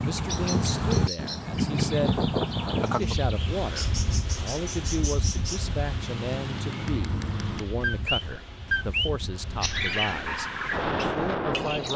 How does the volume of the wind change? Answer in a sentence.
The volume of the wind goes down, then up.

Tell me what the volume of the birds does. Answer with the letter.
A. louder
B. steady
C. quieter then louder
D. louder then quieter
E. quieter
A.